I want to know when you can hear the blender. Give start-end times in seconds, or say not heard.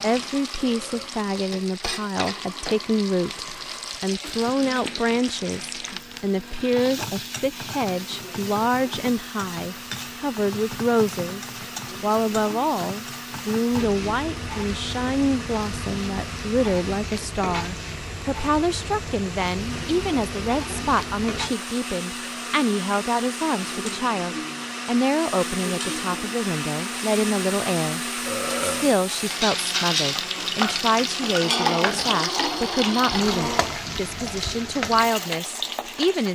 0.1-33.8.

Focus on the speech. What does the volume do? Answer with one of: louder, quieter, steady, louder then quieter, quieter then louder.
steady.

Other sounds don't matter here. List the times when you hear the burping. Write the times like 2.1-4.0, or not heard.
0.6-1.2, 28.2-29.0.